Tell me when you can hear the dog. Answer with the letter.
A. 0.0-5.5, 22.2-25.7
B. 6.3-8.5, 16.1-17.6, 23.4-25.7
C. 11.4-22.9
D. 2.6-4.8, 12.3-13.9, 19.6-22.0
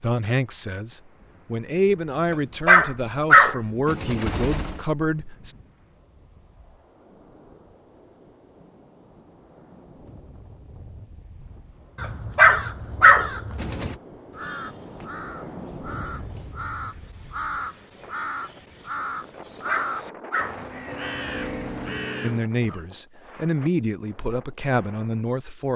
D.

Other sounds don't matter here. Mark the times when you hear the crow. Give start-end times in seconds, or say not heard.
11.4-22.9.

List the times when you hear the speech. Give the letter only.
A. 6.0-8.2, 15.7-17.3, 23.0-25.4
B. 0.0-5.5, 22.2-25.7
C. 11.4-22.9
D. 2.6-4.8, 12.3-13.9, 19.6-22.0
B.